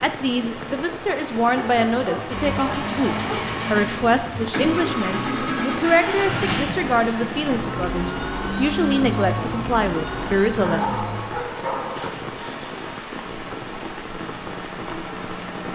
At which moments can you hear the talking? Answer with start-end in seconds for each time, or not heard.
0.0-10.8.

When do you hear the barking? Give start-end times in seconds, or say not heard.
1.6-3.5, 10.6-12.2.